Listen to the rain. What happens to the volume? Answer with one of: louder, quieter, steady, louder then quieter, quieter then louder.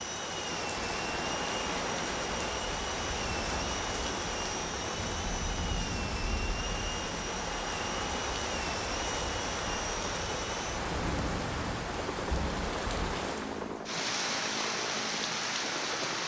steady.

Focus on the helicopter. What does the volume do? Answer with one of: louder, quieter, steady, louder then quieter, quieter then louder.
steady.